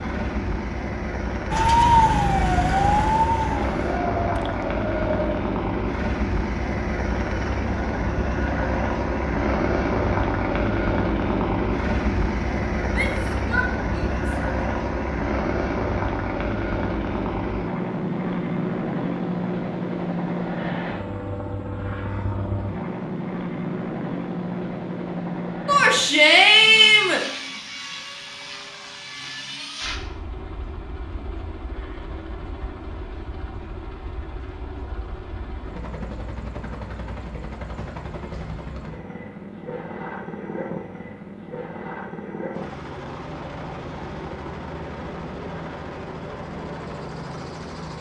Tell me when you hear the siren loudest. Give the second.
2 s.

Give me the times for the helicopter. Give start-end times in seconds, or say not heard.
0.0-47.9.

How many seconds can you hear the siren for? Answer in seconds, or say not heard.
4 s.